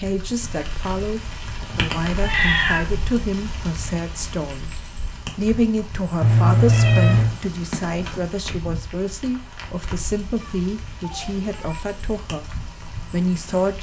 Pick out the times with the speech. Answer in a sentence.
You can hear the speech from 0.0 to 4.7 s, from 5.3 to 12.5 s and from 13.1 to 13.7 s.